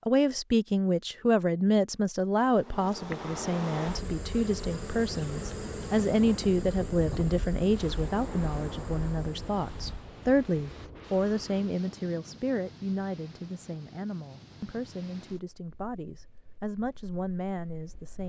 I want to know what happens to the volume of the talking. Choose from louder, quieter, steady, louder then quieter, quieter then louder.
quieter.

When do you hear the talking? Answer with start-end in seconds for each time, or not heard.
0.1-18.2.